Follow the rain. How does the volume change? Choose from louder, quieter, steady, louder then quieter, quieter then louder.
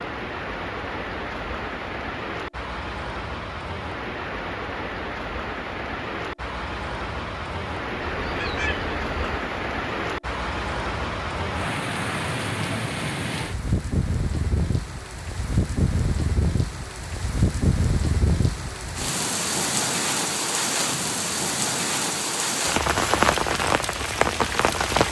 louder.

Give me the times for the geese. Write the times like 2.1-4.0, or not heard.
8.0-9.3.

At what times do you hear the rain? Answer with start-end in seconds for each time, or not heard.
0.0-25.0.